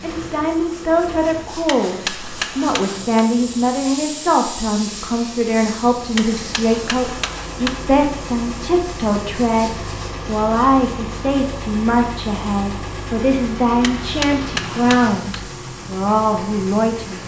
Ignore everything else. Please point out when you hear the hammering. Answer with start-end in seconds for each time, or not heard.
1.6-3.2, 6.2-7.8, 13.8-15.2.